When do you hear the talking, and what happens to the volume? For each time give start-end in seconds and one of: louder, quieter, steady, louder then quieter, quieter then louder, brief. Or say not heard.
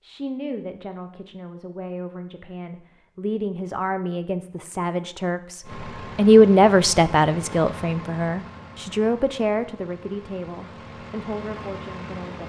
0.0-12.4 louder then quieter.